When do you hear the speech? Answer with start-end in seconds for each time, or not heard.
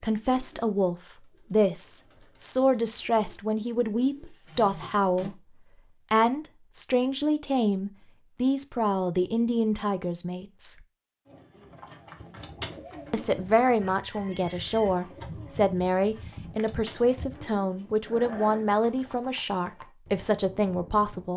0.0-10.8, 13.1-21.3.